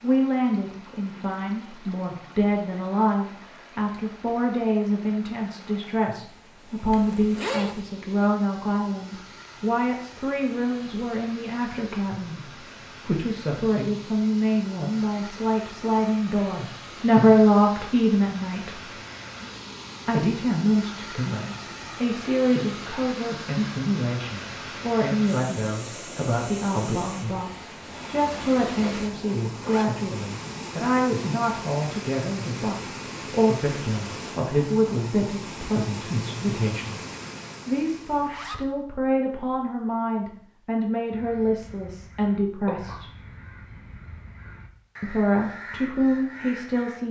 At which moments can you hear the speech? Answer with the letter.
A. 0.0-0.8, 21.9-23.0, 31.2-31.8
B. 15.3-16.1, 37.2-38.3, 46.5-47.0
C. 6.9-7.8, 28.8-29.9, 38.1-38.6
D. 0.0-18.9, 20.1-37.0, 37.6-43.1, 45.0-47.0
D.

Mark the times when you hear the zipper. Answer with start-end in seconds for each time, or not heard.
6.9-7.8, 28.8-29.9, 38.1-38.6.